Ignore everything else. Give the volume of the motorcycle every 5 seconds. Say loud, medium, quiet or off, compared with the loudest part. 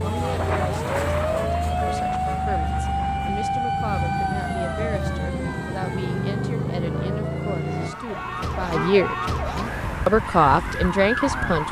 medium, loud, off.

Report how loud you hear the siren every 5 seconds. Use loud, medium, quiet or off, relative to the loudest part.
loud, medium, loud.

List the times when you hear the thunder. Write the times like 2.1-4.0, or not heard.
0.2-3.5.